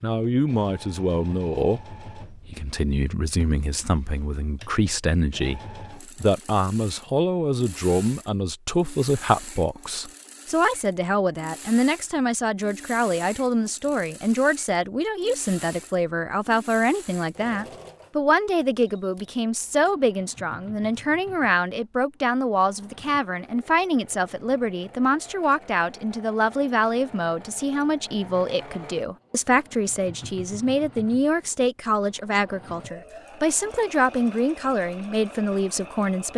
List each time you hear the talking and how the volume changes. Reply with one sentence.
The talking can be heard from 0.0 to 36.3 s, at a steady volume.